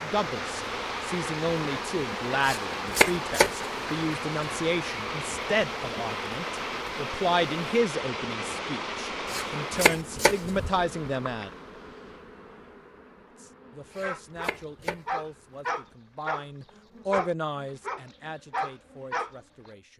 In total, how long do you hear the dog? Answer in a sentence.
You can hear the dog for 6 seconds altogether.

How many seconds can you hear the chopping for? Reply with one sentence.
The chopping can be heard for 3 seconds in total.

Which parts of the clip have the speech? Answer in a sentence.
The speech can be heard from 0.0 to 11.5 s and from 13.3 to 19.9 s.